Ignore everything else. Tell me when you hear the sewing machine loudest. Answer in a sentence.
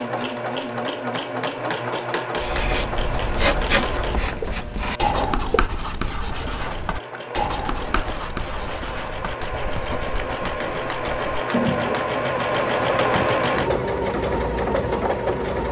The loudest moment of the sewing machine is at 13 seconds.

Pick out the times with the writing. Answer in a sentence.
You can hear the writing from 2.4 to 13.9 s.